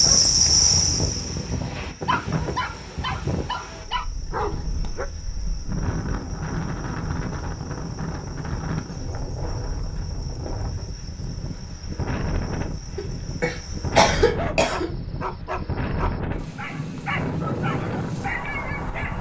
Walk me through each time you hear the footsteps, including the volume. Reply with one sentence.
You can't hear the footsteps here.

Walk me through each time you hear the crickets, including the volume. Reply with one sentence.
The crickets can be heard from 0.0 to 14.0 s, getting quieter.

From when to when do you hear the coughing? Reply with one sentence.
You can hear the coughing from 12.9 to 14.9 s.